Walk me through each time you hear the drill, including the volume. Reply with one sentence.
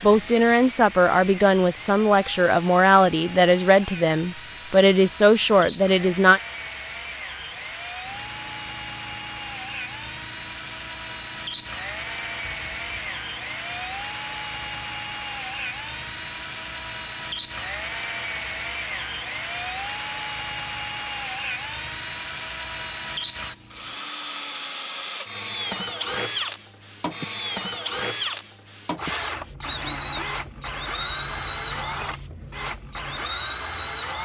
You can hear the drill from 0.0 to 34.1 s, getting louder.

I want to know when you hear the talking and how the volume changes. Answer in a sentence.
The talking can be heard from 0.0 to 6.4 s, at a steady volume.